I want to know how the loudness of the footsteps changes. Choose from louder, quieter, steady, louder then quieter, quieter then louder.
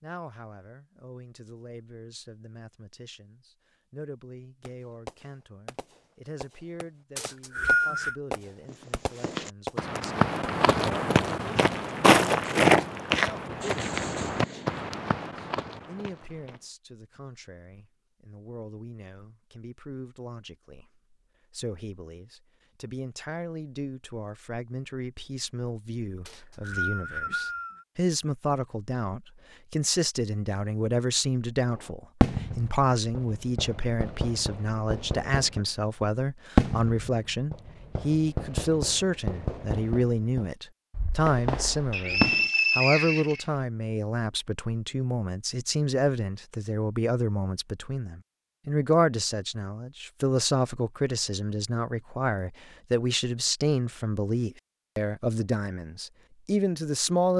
louder then quieter.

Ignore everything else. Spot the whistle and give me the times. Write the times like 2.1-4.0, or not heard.
7.2-8.2, 26.2-27.9, 41.9-43.5.